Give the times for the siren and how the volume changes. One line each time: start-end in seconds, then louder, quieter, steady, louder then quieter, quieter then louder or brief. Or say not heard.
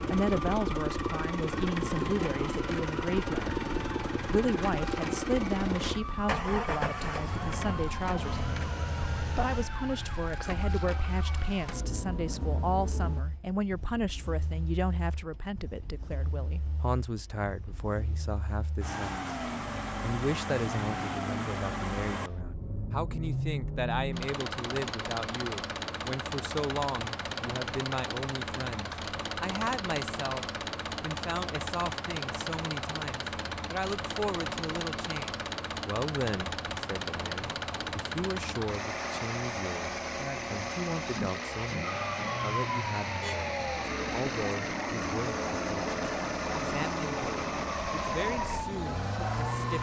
0.0-13.2 steady
41.8-49.7 steady.